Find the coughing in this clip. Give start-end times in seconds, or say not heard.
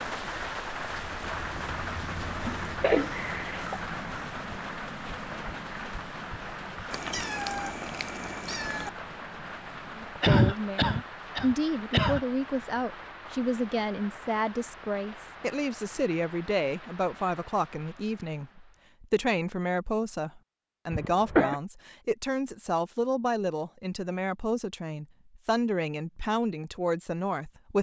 2.5-3.8, 10.2-12.2, 20.9-21.6.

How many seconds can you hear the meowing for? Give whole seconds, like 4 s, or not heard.
2 s.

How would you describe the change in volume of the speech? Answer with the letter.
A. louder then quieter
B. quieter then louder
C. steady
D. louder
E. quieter
C.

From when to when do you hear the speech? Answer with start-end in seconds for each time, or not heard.
9.9-27.7.